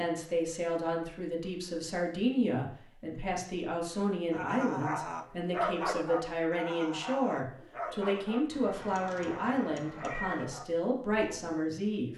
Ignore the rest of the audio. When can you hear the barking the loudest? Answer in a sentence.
The loudest moment of the barking is at 6 seconds.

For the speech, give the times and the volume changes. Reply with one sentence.
You can hear the speech from 0.0 to 12.1 s, at a steady volume.